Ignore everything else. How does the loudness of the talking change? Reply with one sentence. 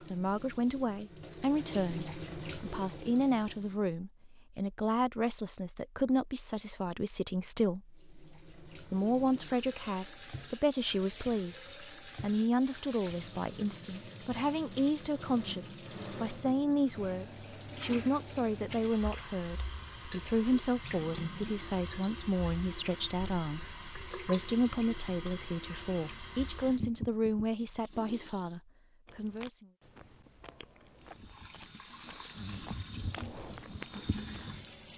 The volume of the talking stays about the same.